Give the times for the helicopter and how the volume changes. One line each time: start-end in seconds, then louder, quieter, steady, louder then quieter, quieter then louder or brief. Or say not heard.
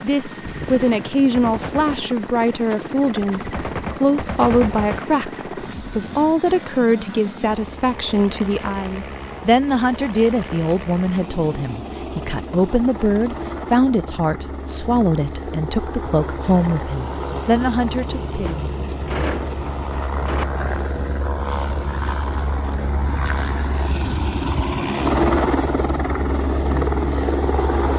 0.0-27.9 louder.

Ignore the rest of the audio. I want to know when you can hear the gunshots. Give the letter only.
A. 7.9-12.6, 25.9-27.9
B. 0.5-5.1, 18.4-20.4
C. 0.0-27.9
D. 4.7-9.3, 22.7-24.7
B.